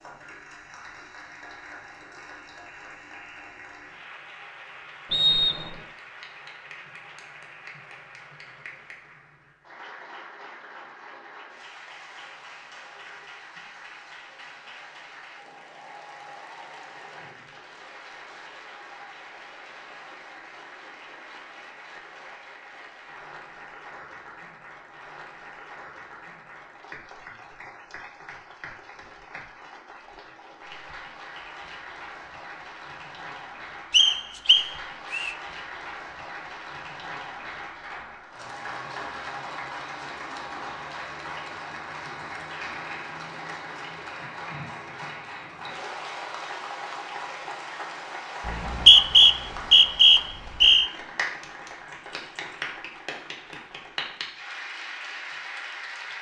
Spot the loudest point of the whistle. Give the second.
49 s.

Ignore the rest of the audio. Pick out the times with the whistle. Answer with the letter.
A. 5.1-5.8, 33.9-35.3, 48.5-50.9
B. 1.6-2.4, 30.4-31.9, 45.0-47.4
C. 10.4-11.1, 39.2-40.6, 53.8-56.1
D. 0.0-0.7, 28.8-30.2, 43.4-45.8
A.